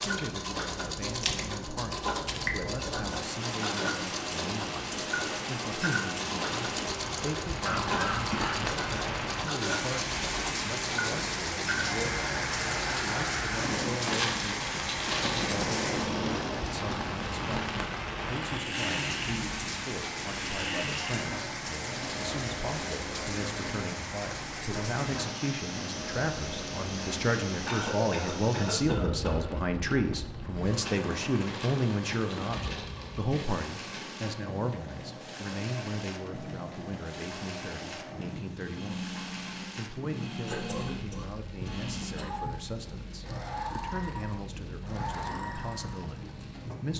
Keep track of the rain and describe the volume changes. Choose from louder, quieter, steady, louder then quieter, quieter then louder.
quieter.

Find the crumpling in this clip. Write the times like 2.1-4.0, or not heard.
13.9-15.6, 31.4-33.4.